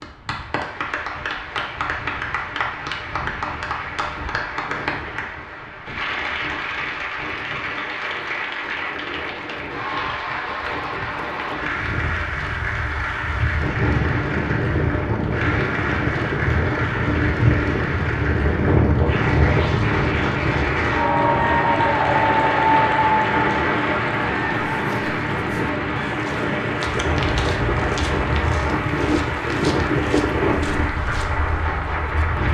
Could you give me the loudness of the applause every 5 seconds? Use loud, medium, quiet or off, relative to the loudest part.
medium, medium, medium, medium, loud, medium, medium.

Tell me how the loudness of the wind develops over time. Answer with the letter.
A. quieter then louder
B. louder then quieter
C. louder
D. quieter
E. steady
C.